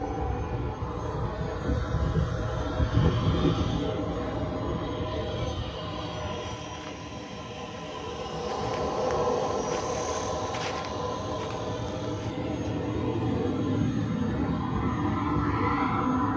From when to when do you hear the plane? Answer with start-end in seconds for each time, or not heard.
0.0-16.3.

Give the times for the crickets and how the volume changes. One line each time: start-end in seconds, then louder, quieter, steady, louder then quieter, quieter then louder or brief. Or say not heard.
not heard.